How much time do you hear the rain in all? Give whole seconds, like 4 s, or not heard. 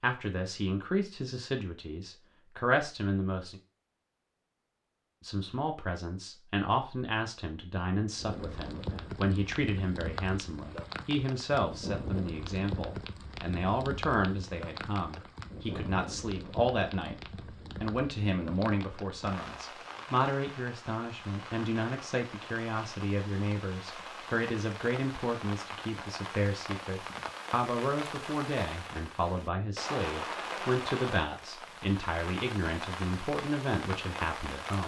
27 s.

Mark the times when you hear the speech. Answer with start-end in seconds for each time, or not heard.
0.0-3.6, 5.2-34.8.